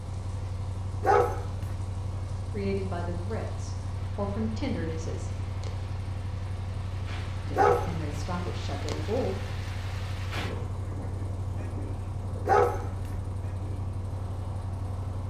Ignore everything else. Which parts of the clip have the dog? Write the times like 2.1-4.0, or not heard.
1.0-1.8, 7.5-8.1, 12.4-13.2.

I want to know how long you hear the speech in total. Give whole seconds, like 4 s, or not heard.
5 s.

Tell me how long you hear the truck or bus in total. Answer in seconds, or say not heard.
15 s.